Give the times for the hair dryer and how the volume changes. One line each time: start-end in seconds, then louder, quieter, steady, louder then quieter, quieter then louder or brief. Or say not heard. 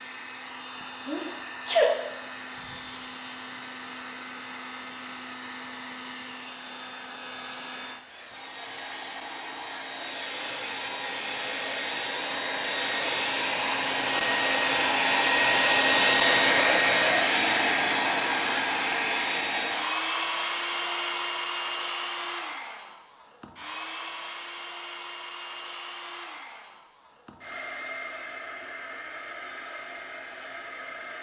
0.0-31.1 louder then quieter.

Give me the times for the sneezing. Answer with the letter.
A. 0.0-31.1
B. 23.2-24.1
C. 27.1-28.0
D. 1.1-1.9
D.